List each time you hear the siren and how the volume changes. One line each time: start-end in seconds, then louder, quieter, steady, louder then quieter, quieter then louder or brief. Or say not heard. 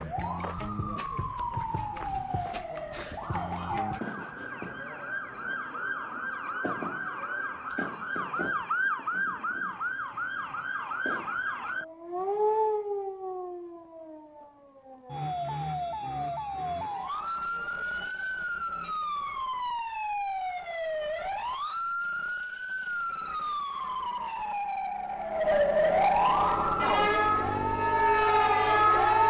0.0-29.2 louder.